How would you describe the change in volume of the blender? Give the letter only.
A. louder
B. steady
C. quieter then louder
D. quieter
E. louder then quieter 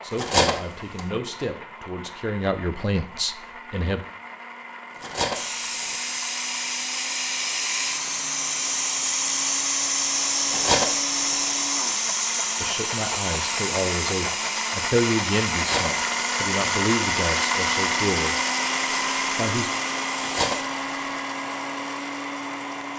A.